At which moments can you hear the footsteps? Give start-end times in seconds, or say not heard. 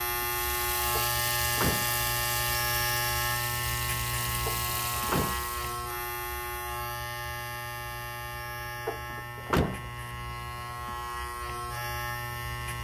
not heard.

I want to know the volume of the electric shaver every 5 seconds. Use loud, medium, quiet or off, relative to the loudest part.
loud, medium, medium.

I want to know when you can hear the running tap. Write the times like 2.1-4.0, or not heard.
0.2-5.8.